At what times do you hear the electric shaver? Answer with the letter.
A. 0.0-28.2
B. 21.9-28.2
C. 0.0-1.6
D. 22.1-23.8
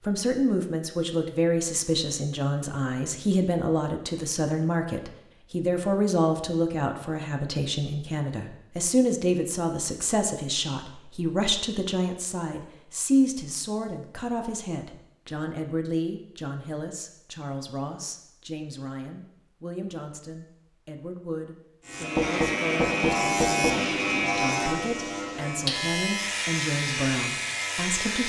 B.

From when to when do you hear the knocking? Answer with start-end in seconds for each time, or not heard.
22.1-23.8.